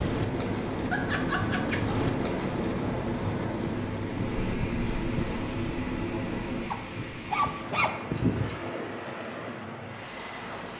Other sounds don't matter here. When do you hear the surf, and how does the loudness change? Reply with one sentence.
The surf can be heard from 0.0 to 10.7 s, getting quieter.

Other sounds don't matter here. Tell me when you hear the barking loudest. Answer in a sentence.
The loudest moment of the barking is at 8 seconds.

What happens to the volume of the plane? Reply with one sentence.
The loudness of the plane goes down.